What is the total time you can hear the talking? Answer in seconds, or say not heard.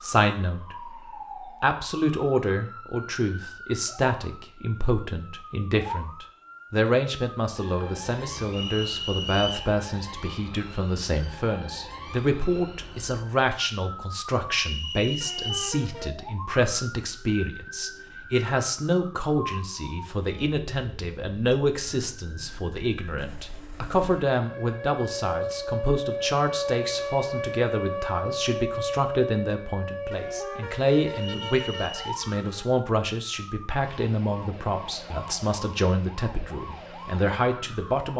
38 s.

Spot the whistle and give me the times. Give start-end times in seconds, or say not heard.
8.5-9.8, 14.6-15.7, 31.1-32.0.